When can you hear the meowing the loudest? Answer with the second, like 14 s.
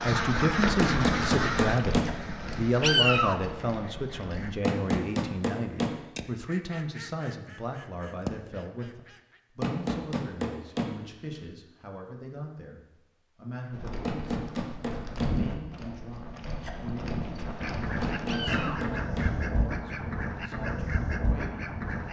3 s.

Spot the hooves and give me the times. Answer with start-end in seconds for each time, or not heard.
0.0-4.6, 13.7-18.6.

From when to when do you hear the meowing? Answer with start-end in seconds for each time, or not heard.
2.8-3.5, 18.2-18.9.